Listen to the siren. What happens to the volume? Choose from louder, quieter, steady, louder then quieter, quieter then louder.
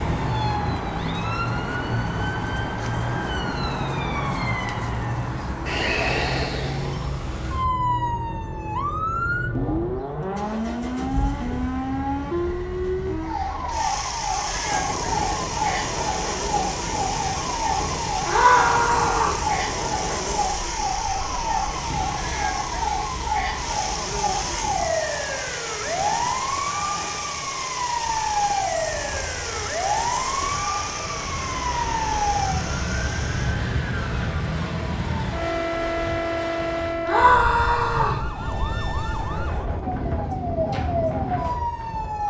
steady.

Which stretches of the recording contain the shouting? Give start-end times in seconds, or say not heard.
18.2-19.4, 37.0-38.2.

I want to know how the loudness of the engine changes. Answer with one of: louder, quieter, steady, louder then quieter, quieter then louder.
steady.